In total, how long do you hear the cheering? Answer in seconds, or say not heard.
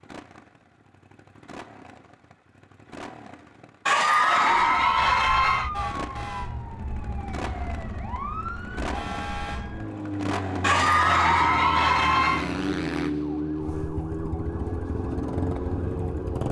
4 s.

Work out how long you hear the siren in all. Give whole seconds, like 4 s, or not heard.
12 s.